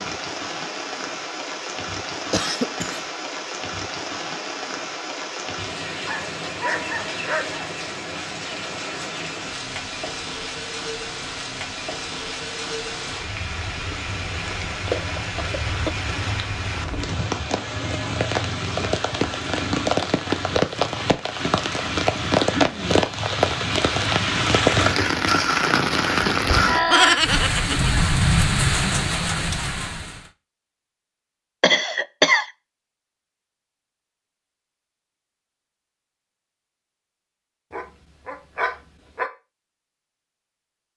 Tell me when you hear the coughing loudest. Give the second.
32 s.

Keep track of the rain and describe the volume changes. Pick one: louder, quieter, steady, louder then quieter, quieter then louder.
louder.